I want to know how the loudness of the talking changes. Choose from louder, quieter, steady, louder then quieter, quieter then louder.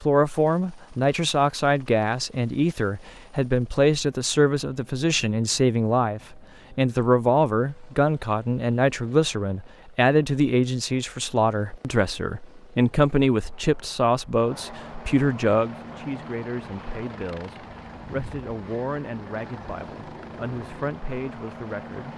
quieter.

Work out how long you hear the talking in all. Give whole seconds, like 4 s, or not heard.
22 s.